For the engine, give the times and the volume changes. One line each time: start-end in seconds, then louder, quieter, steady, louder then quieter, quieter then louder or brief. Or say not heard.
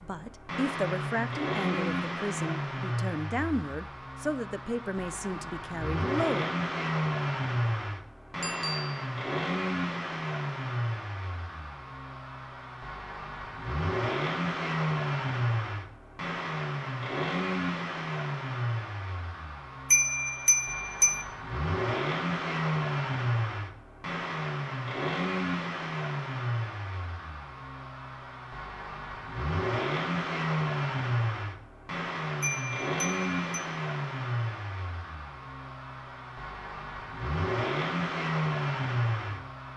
0.0-39.7 steady.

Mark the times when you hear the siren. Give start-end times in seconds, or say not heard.
not heard.